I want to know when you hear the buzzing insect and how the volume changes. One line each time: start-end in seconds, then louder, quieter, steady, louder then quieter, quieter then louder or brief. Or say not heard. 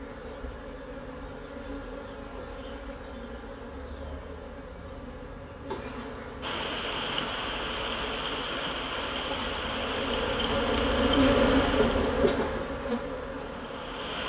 0.0-14.2 louder.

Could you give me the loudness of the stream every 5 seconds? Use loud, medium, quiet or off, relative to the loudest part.
off, loud, loud.